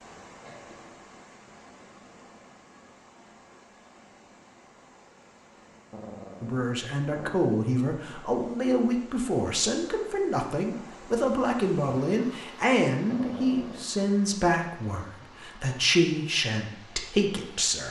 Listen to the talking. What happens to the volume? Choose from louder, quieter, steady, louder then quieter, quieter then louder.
steady.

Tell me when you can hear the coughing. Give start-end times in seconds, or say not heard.
0.5-0.9.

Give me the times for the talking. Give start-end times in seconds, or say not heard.
6.4-17.8.